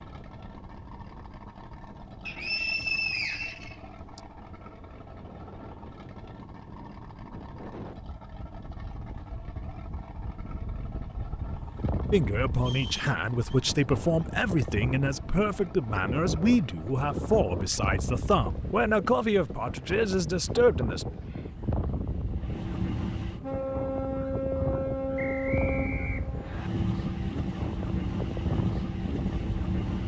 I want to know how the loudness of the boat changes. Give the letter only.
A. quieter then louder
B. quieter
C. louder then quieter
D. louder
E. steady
D.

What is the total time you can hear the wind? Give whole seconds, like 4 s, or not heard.
30 s.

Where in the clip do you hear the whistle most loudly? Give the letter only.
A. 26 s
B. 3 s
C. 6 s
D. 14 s
B.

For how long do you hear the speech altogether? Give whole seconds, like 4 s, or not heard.
9 s.